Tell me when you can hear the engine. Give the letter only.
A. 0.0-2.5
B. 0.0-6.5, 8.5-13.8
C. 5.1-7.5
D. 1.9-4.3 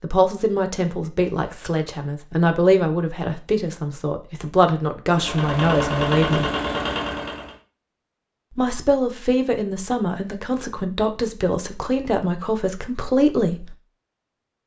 C.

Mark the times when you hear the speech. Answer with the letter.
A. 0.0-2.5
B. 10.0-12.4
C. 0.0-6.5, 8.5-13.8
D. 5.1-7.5
C.